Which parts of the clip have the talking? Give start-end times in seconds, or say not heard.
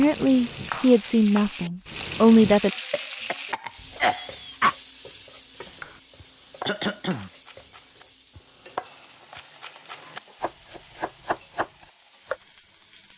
0.0-2.7.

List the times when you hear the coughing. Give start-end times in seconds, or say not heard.
2.9-4.8, 6.7-7.3.